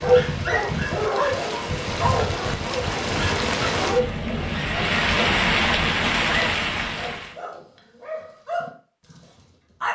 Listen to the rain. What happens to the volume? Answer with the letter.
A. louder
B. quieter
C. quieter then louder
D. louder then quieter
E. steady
A.